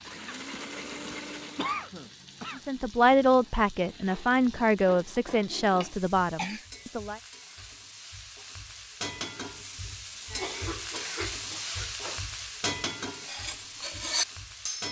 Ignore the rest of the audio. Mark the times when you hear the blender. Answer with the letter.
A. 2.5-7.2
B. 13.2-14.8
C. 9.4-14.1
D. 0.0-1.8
D.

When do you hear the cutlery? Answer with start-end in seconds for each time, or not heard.
13.2-14.8.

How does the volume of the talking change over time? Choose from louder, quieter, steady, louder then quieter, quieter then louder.
quieter.